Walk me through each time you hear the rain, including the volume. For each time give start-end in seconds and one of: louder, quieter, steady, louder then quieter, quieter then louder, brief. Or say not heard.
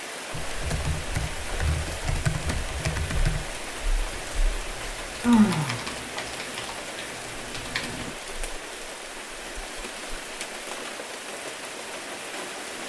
0.0-12.8 steady.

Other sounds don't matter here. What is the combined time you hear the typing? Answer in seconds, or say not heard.
8 s.